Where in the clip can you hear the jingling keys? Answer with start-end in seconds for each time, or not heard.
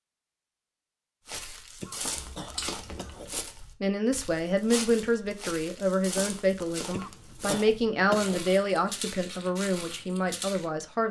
2.1-3.3.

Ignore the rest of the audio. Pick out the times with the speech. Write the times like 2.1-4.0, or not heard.
3.8-11.0.